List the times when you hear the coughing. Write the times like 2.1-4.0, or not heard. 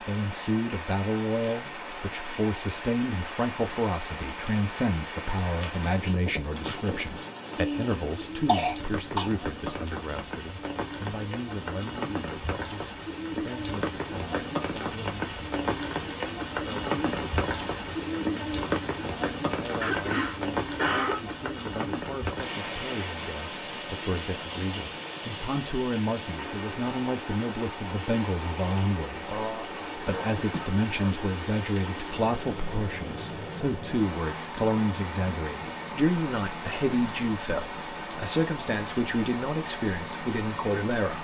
7.5-9.3, 19.8-21.2, 29.2-31.1.